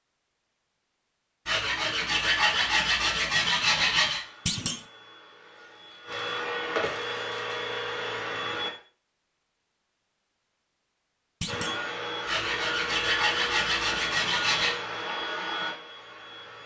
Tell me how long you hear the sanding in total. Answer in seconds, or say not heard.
5 s.